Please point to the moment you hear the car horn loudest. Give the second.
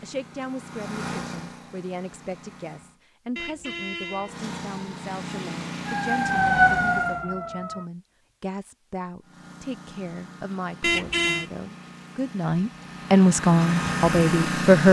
11 s.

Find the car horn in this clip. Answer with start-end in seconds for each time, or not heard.
3.4-4.3, 10.8-11.4.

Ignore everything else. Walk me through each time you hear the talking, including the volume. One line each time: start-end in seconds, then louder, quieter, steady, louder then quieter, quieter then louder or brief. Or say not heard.
0.0-14.8 louder.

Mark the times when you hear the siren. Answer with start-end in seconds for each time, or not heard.
4.0-7.9.